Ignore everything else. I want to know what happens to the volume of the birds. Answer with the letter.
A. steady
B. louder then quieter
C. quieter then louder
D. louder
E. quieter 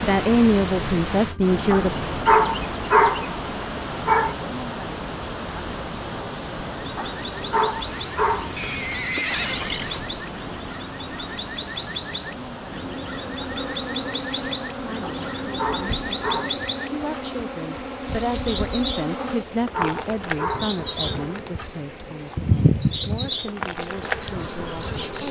D.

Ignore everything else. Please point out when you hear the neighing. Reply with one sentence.
The neighing can be heard from 8.6 to 10.2 s.